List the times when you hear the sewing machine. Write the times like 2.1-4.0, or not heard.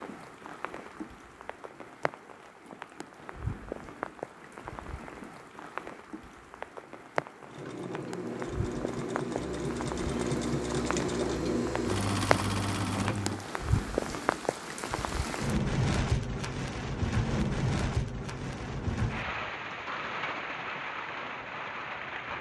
7.4-13.5.